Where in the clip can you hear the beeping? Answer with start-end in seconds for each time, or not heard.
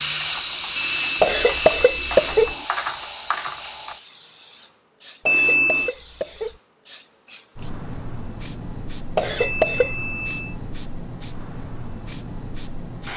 0.8-2.6, 5.2-6.0, 9.3-10.6.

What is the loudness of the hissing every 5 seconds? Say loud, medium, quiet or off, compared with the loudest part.
loud, medium, medium.